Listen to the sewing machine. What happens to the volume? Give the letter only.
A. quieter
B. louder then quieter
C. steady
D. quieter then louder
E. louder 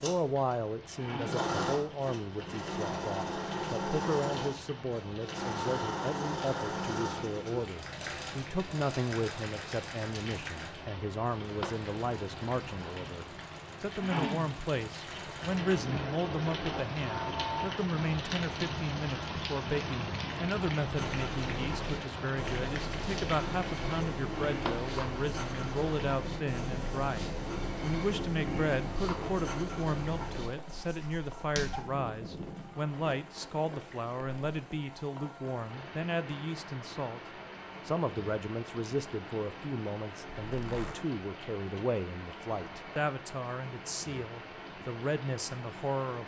D.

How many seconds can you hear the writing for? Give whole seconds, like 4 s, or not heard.
11 s.